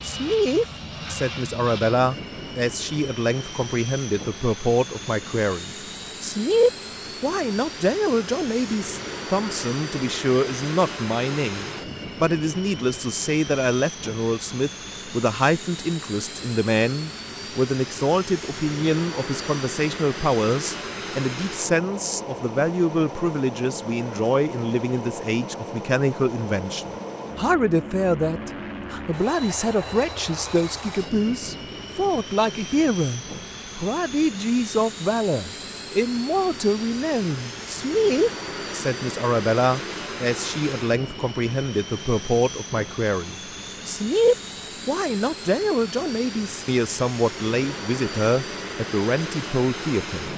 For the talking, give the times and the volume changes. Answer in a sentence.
The talking can be heard from 0.0 to 50.3 s, at a steady volume.